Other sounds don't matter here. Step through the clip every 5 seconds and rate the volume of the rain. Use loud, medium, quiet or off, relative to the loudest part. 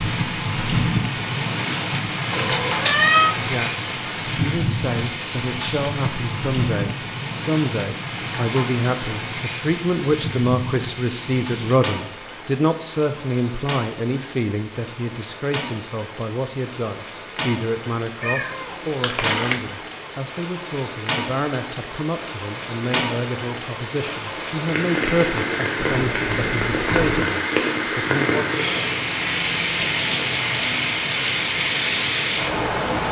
loud, medium, medium, medium, medium, loud, loud.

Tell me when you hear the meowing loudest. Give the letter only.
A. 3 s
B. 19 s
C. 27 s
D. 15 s
A.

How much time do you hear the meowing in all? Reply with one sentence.
You can hear the meowing for 4 seconds altogether.